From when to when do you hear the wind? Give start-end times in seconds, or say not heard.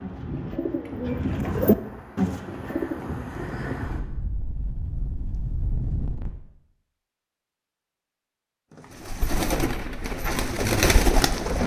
0.0-6.3.